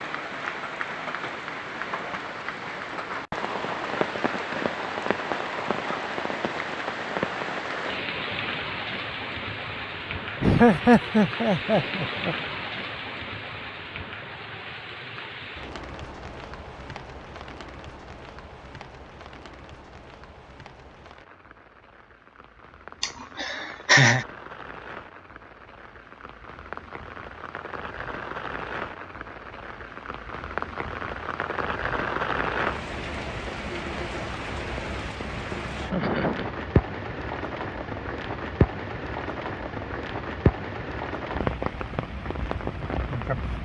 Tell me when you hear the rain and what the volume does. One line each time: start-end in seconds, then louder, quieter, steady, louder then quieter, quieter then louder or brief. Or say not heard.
0.0-43.6 quieter then louder.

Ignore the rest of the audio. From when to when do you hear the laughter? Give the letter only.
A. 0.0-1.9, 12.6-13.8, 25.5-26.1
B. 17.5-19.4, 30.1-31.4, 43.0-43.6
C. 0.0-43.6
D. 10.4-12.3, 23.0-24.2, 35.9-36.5
D.